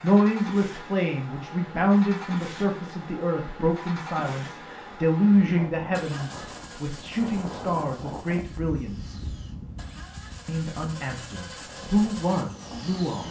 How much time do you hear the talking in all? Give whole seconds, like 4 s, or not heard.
12 s.